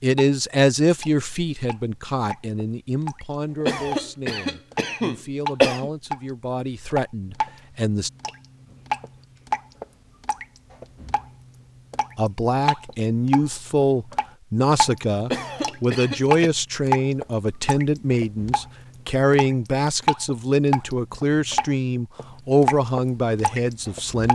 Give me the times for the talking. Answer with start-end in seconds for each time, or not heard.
0.0-8.1, 12.2-24.3.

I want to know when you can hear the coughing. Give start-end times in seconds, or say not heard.
3.6-5.9, 15.3-16.5.